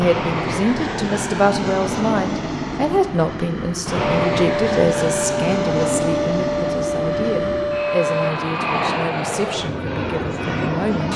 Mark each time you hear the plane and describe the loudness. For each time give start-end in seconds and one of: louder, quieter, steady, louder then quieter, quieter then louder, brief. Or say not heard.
0.0-11.1 steady.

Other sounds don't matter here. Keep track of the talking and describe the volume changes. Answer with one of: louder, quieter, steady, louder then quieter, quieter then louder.
quieter.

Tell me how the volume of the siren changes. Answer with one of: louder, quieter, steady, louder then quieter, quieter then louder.
steady.